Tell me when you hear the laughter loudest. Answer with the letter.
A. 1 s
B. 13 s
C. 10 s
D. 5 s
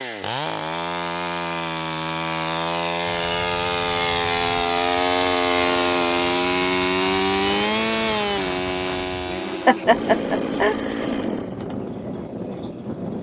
C.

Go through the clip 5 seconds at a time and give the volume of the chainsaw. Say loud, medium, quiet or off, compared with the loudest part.
loud, loud, medium.